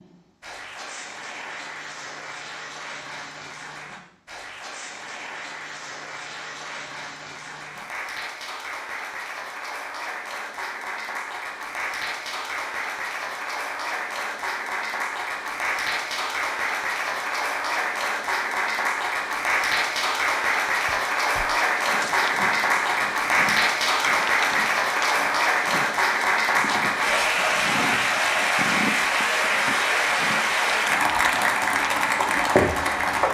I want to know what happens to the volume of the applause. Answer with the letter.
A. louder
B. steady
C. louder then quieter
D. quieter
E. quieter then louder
A.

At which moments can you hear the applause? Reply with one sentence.
You can hear the applause from 0.0 to 33.2 s.